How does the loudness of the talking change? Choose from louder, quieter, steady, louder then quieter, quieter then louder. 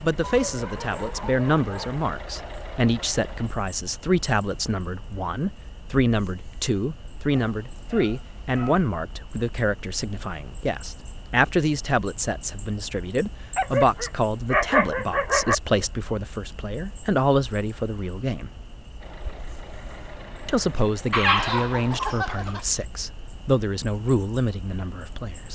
steady.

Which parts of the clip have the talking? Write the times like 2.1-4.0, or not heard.
0.0-18.5, 20.4-25.4.